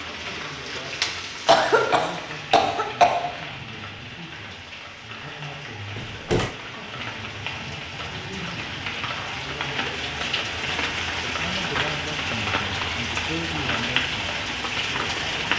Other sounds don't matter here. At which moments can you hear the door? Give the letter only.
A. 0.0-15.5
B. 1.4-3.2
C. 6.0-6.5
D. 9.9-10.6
C.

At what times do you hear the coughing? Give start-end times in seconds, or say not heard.
1.4-3.2.